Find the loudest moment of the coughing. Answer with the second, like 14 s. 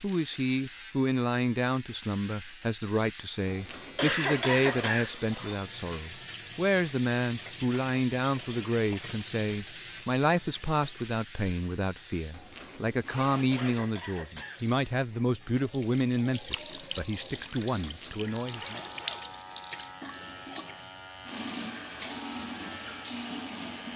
4 s.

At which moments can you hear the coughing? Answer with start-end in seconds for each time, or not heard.
4.0-5.1, 13.5-14.7.